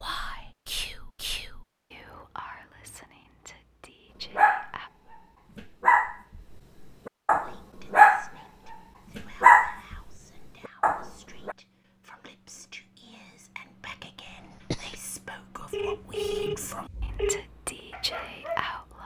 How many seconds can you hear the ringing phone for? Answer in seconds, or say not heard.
2 s.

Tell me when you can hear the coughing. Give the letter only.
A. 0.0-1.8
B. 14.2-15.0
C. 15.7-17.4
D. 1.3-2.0
B.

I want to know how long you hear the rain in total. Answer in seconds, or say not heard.
not heard.